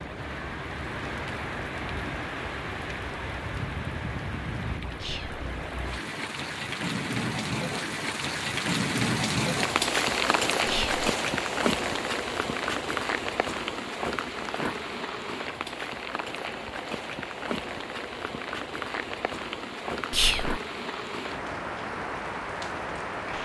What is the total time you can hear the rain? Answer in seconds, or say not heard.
23 s.